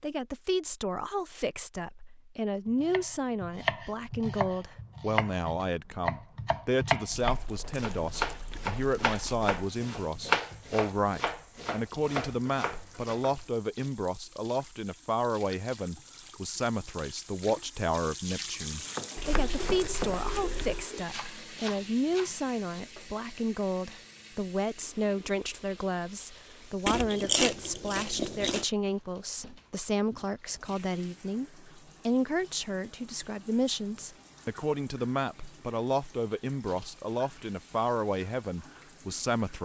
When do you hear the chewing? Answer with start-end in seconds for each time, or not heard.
7.1-9.5, 19.1-20.9, 26.9-28.6.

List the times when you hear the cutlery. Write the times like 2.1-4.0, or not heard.
not heard.